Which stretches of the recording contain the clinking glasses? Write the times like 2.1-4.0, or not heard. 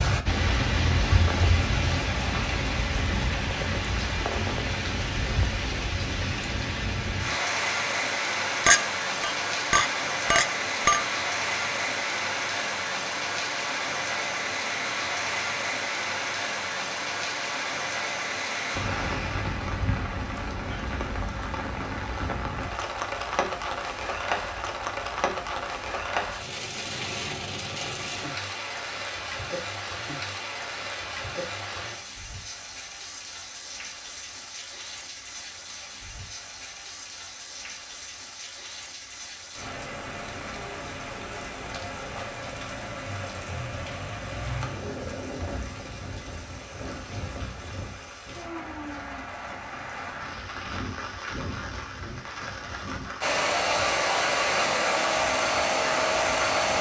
8.7-11.1.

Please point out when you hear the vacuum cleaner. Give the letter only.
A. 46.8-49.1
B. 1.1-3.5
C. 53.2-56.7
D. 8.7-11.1
C.